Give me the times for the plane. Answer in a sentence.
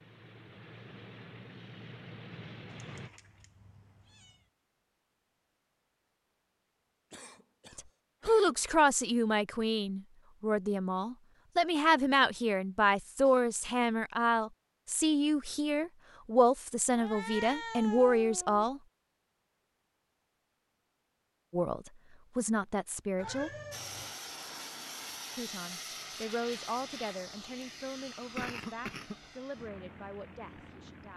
You can hear the plane from 0.0 to 3.1 s and from 23.7 to 31.1 s.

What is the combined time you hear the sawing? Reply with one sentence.
The sawing can't be heard in this clip.